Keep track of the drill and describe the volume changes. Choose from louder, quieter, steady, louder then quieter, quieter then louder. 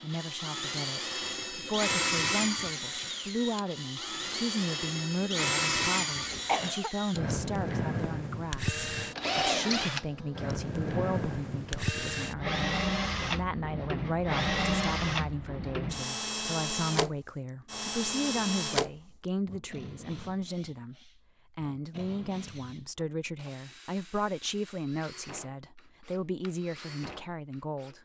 quieter.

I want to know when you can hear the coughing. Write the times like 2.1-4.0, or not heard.
5.7-6.9.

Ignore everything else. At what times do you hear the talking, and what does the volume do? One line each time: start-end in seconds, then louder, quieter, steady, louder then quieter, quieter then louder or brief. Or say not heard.
0.0-28.0 steady.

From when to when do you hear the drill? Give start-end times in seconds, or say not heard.
0.0-28.0.